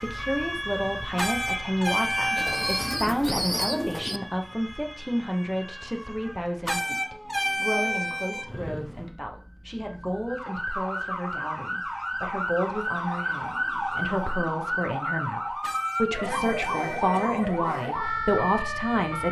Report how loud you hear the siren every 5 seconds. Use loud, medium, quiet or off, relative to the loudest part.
medium, quiet, loud, loud.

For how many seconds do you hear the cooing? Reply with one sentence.
The cooing can be heard for 4 seconds in total.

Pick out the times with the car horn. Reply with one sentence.
You can hear the car horn from 1.1 to 3.0 s, from 6.7 to 8.4 s and from 15.6 to 17.4 s.